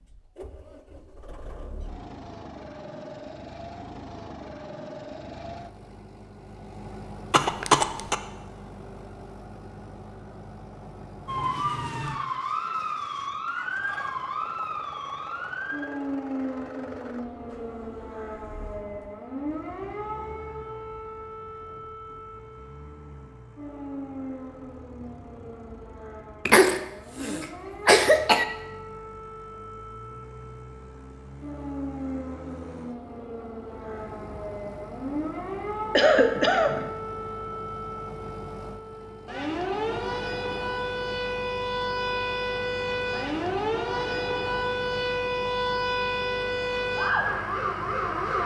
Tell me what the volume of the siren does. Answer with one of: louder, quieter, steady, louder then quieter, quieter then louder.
quieter then louder.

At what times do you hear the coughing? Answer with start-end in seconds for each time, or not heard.
7.3-8.2, 26.4-28.4, 36.0-36.9.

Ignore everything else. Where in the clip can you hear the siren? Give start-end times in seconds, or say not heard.
11.2-48.4.